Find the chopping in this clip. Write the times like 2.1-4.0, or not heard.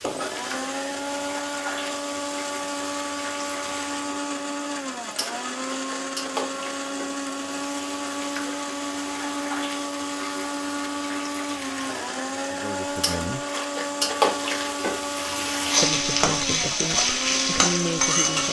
not heard.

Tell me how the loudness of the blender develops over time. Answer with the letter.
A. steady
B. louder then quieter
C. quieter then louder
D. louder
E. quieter
A.